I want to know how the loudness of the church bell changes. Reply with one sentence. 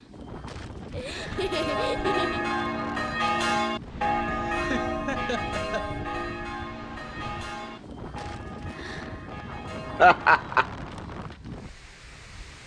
The loudness of the church bell goes down.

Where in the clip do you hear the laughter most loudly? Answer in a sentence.
The loudest moment of the laughter is at 10 seconds.